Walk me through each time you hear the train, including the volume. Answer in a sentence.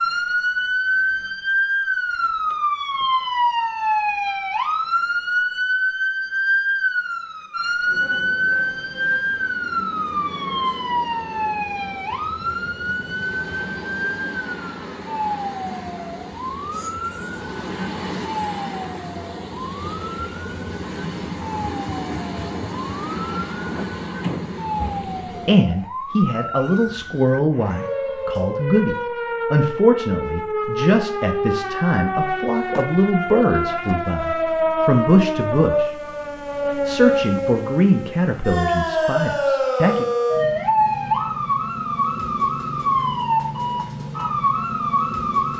You can hear the train from 7.8 to 25.6 s, getting louder.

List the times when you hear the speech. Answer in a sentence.
You can hear the speech from 25.4 to 36.0 s and from 36.9 to 40.0 s.